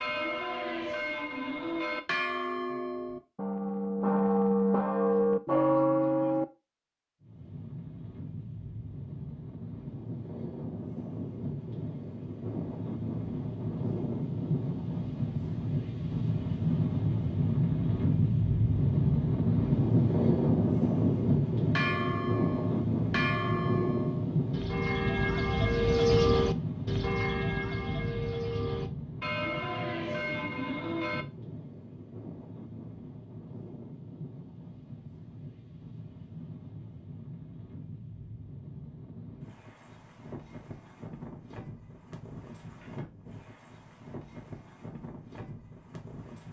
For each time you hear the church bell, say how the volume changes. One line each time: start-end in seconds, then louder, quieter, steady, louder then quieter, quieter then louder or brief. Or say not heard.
0.0-6.5 louder
21.8-31.2 louder then quieter.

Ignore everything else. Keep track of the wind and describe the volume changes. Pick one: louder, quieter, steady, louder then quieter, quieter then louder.
louder then quieter.